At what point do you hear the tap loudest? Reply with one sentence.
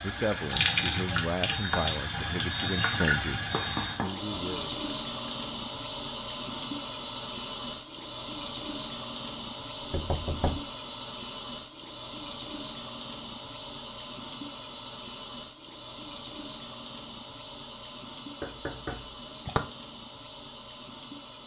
The loudest moment of the tap is at 1 second.